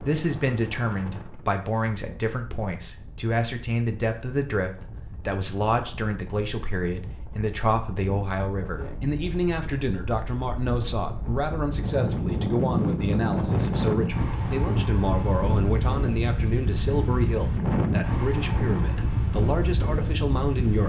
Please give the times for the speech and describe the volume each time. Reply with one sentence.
You can hear the speech from 0.0 to 20.8 s, at a steady volume.